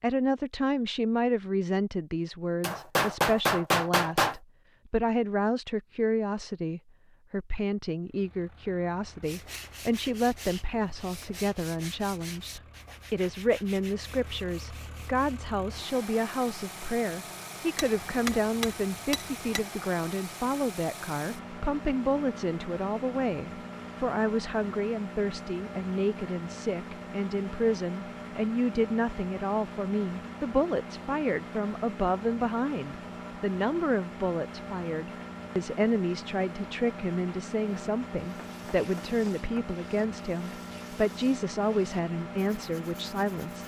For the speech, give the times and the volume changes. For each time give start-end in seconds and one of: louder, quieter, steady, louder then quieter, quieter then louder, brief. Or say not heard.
0.0-43.6 steady.